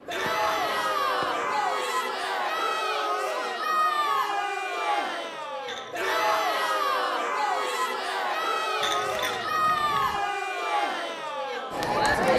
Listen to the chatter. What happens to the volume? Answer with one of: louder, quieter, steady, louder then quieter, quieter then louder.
steady.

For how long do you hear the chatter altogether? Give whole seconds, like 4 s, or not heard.
12 s.